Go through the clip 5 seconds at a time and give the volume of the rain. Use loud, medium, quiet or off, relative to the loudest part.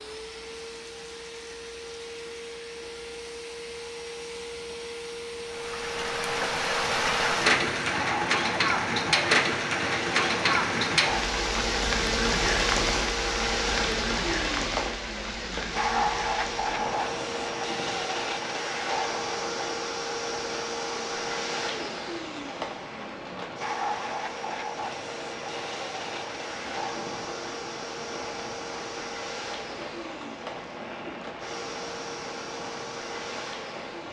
off, loud, loud, medium, quiet, quiet, quiet.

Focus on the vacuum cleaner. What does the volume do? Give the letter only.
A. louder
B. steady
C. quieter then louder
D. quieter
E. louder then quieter
E.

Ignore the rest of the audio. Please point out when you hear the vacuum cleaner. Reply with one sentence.
You can hear the vacuum cleaner from 0.0 to 34.0 s.